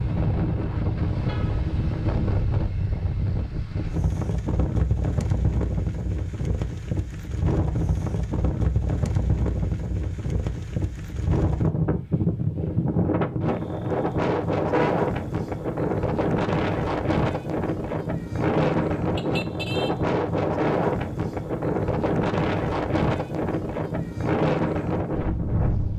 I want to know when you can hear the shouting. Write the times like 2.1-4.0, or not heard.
not heard.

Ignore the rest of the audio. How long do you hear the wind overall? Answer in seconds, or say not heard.
26 s.